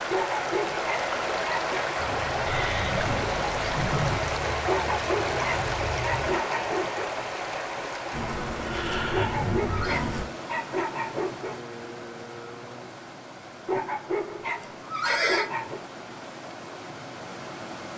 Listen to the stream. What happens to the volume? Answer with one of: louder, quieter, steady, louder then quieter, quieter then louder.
quieter.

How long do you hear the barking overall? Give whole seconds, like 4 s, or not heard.
9 s.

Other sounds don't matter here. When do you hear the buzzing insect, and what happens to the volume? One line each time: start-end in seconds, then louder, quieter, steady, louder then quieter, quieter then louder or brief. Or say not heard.
1.9-6.4 steady
8.1-10.2 brief.